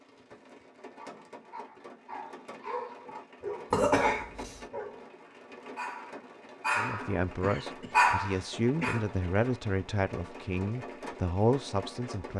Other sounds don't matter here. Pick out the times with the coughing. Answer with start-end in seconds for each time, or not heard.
3.7-4.6, 7.4-8.9.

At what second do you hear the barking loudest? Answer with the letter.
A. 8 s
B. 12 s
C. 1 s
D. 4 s
A.